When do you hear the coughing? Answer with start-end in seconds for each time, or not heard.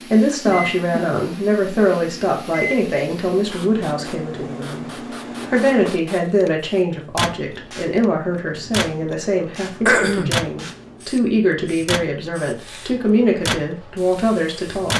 0.5-1.2, 9.8-10.4.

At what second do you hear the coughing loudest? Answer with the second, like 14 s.
10 s.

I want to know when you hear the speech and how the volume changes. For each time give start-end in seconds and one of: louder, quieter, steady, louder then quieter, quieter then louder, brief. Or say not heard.
0.1-14.9 steady.